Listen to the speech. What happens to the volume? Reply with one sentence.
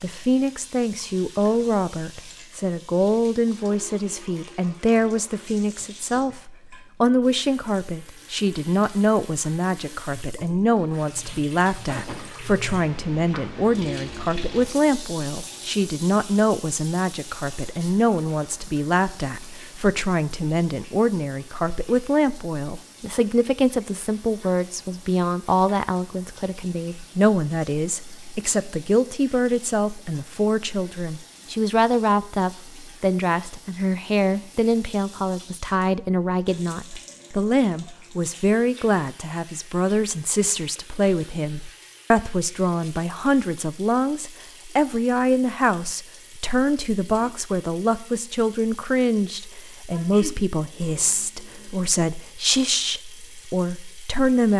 The loudness of the speech stays about the same.